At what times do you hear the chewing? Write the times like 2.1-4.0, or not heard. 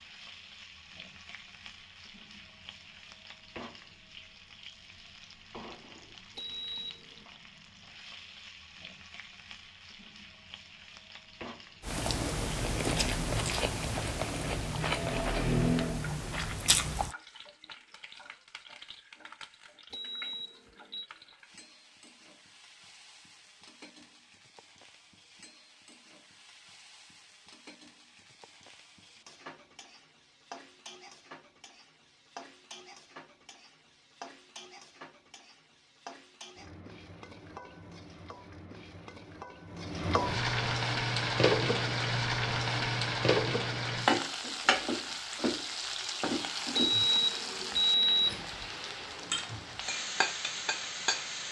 11.8-17.1.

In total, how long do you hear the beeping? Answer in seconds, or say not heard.
4 s.